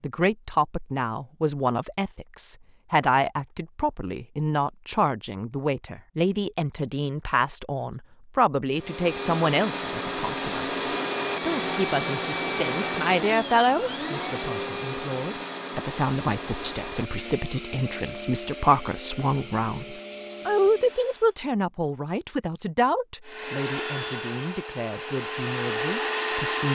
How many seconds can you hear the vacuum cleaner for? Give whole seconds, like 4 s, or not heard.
16 s.